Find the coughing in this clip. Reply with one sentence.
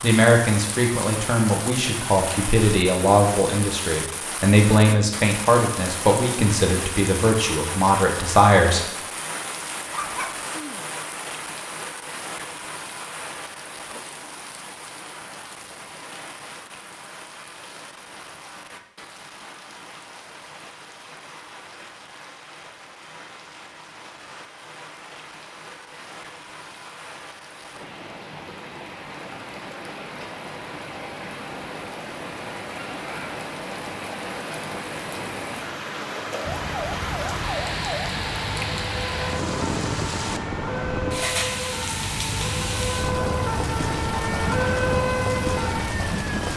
The coughing can't be heard in this clip.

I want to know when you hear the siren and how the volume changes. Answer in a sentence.
The siren can be heard from 36.4 to 46.5 s, getting louder.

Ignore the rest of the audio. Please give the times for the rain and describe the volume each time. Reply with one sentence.
The rain can be heard from 0.0 to 46.5 s, getting quieter then louder.